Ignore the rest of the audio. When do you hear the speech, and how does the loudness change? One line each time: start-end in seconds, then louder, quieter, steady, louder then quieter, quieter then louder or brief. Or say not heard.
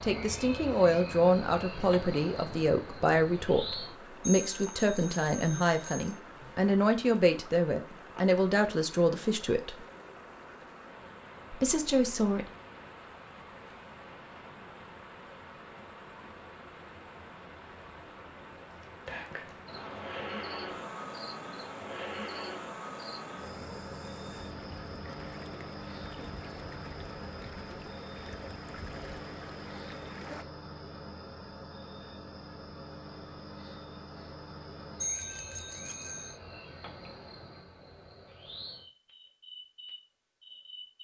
0.0-9.8 steady
11.5-12.5 brief.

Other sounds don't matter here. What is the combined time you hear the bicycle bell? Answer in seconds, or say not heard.
3 s.